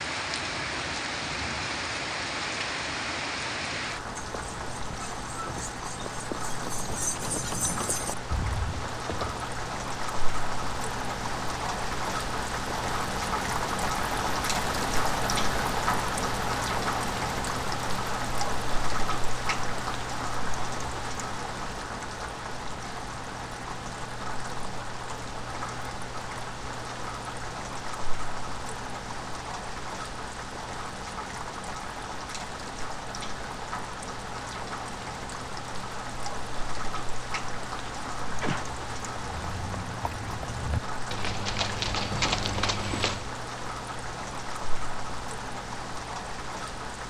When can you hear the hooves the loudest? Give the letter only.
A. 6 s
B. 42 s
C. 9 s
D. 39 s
B.